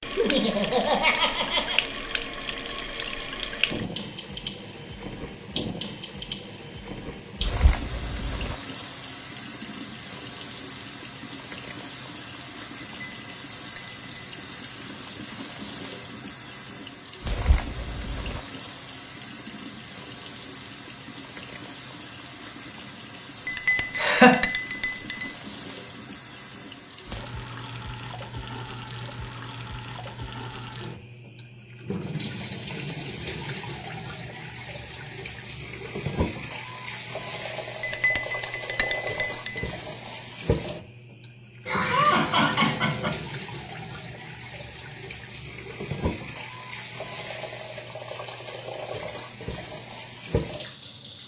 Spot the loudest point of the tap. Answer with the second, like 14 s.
4 s.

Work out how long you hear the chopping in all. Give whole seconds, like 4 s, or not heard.
not heard.